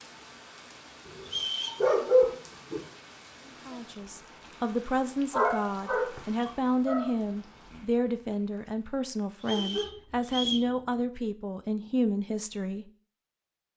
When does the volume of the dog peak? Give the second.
2 s.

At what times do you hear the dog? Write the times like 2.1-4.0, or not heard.
1.1-2.8, 5.3-7.1, 9.4-11.0.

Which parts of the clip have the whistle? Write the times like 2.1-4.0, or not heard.
1.2-1.9, 9.4-10.7.